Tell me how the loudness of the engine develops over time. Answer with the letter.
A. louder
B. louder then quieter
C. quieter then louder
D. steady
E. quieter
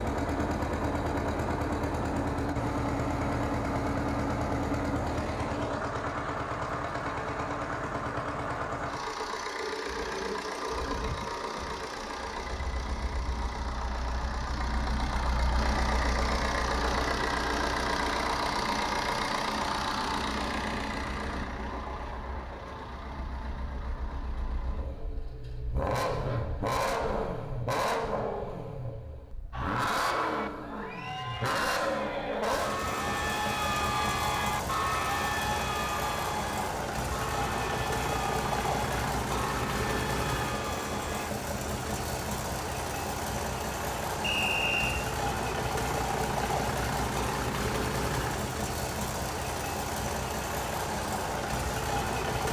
D.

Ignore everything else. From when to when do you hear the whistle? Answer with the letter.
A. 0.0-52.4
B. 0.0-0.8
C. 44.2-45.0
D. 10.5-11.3
C.